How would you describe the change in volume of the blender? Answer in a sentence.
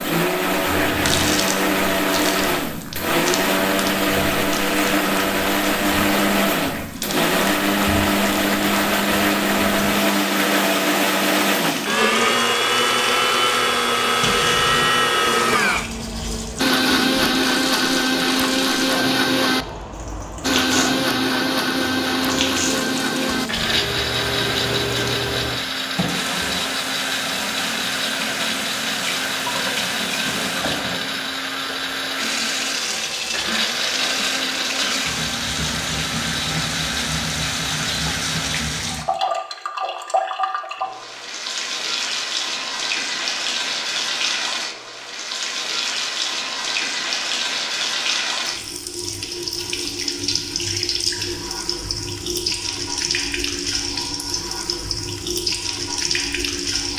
The volume of the blender goes down.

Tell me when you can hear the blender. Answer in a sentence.
The blender can be heard from 0.0 to 39.0 s.